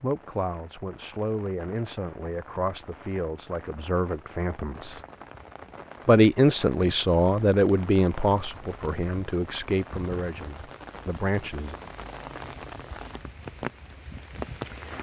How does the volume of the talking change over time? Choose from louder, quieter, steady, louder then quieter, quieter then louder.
louder then quieter.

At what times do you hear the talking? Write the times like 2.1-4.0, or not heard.
0.0-5.0, 6.0-11.8.